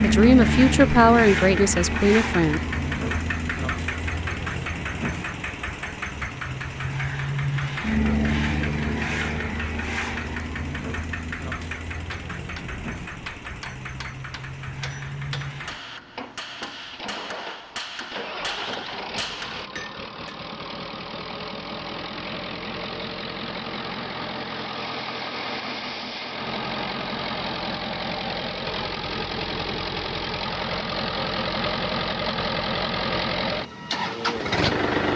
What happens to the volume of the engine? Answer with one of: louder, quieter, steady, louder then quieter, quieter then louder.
quieter then louder.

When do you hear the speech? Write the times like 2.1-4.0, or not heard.
0.0-2.6.